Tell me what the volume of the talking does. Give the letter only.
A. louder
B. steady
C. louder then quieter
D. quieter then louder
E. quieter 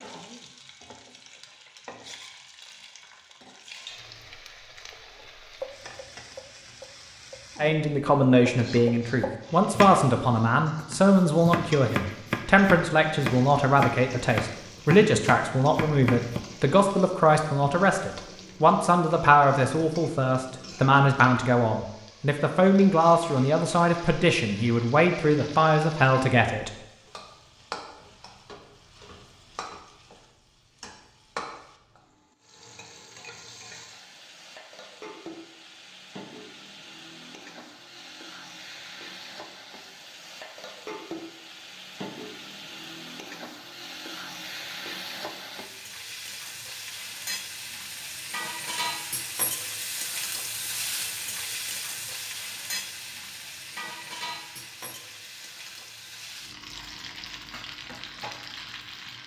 B.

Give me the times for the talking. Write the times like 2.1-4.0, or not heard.
7.6-26.7.